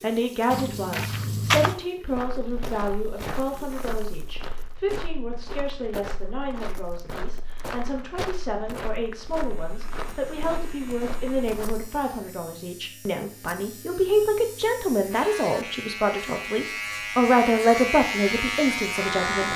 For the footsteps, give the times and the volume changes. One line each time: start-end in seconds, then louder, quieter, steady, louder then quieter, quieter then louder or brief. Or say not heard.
0.5-11.9 quieter.